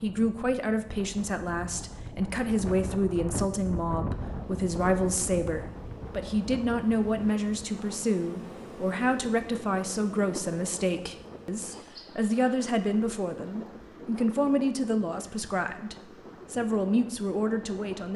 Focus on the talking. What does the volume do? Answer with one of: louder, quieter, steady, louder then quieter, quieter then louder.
steady.